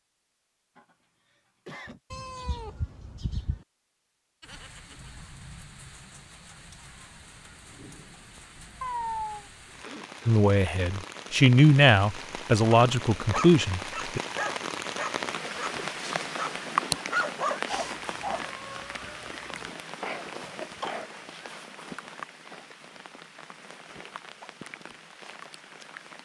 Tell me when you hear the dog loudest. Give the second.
17 s.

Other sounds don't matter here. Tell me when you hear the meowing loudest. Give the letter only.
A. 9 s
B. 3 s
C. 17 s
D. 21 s
A.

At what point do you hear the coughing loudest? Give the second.
21 s.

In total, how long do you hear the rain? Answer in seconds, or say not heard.
22 s.